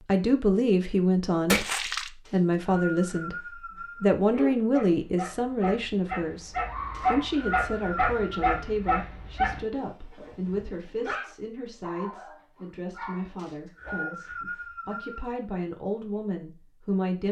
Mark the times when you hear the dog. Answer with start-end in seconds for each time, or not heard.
4.2-14.2.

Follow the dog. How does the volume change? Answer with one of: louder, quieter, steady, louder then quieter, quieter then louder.
louder then quieter.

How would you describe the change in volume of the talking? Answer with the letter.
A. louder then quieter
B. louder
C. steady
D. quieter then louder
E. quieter
E.